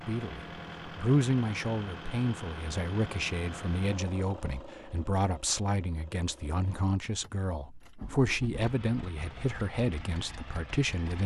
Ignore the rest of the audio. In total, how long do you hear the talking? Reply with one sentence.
The talking can be heard for 11 seconds in total.